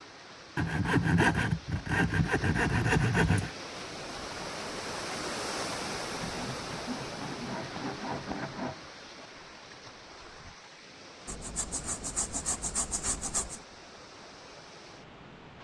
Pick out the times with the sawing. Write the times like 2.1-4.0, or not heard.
0.6-3.5, 6.2-8.8, 11.2-13.6.